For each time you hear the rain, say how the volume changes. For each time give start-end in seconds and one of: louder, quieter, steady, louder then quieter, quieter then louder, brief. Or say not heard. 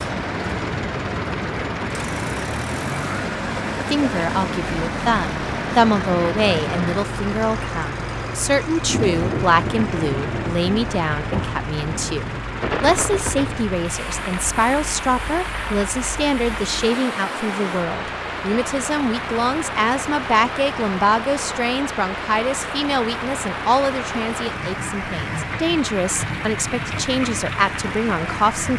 0.0-28.7 steady.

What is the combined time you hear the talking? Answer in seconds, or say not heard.
25 s.